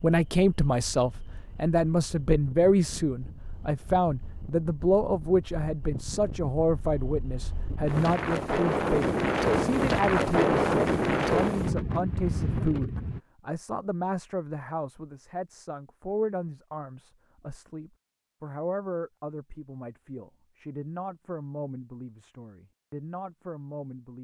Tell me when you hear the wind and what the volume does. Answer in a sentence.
You can hear the wind from 0.0 to 13.2 s, getting louder.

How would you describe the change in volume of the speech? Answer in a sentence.
The volume of the speech goes down.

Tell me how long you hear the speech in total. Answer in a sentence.
The speech can be heard for 24 seconds in total.